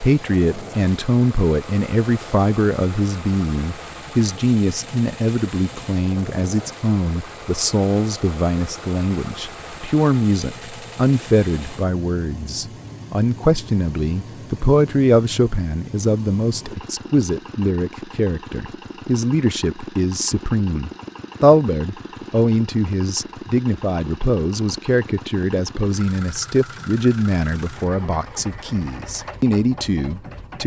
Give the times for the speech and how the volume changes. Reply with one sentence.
You can hear the speech from 0.0 to 30.6 s, at a steady volume.